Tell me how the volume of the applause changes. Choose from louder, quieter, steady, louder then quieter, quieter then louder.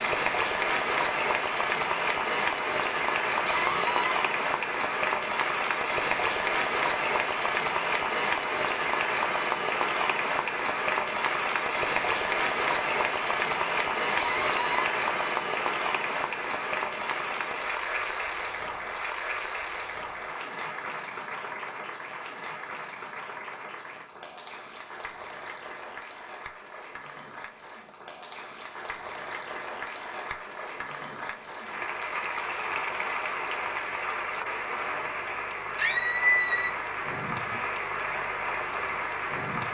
quieter then louder.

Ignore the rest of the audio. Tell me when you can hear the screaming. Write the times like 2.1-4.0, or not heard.
3.5-4.2, 14.2-14.9, 35.8-36.7.